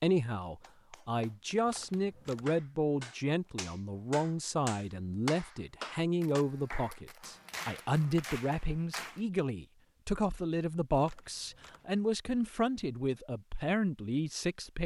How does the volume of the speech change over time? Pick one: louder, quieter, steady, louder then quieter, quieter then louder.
steady.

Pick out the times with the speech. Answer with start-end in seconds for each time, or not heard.
0.0-14.8.